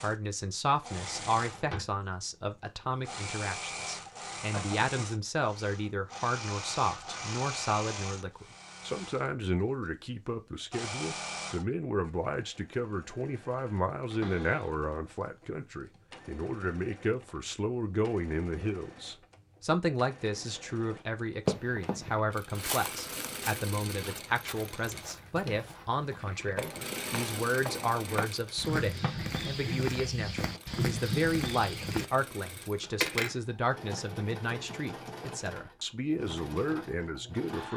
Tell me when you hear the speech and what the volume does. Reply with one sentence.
The speech can be heard from 0.0 to 37.7 s, at a steady volume.